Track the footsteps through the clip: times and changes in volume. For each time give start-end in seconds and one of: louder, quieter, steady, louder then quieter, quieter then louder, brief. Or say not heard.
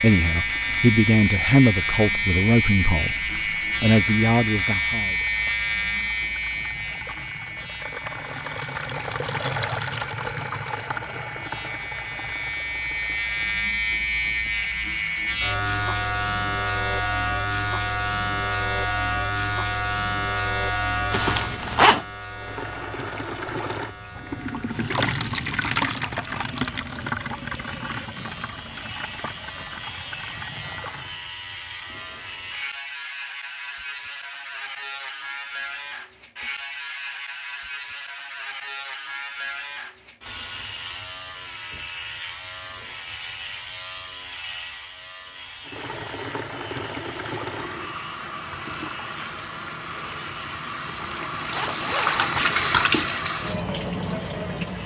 not heard.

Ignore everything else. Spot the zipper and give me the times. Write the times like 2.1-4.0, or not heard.
21.1-22.1, 50.9-52.4.